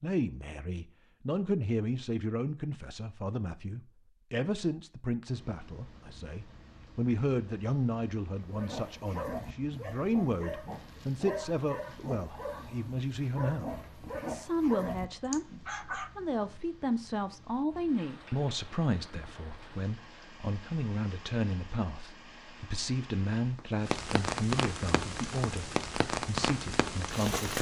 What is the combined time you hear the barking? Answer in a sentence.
You can hear the barking for 8 seconds altogether.